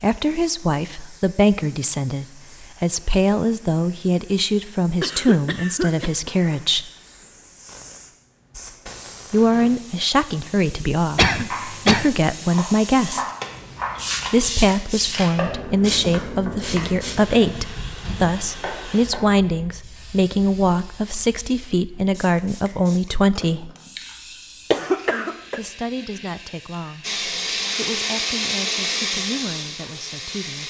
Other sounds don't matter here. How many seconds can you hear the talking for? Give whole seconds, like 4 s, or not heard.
25 s.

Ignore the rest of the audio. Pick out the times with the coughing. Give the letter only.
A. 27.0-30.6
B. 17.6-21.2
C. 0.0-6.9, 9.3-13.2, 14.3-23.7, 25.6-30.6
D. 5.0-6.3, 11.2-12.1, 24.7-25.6
D.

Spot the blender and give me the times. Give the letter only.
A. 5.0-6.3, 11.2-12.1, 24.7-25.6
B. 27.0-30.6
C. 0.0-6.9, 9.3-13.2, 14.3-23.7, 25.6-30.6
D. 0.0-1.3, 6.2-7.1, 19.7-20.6
B.